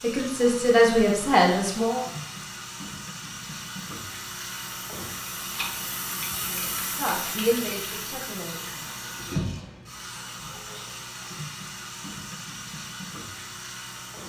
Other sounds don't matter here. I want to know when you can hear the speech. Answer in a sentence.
You can hear the speech from 0.0 to 2.0 s and from 6.4 to 8.7 s.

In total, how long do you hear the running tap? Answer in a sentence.
You can hear the running tap for 14 seconds altogether.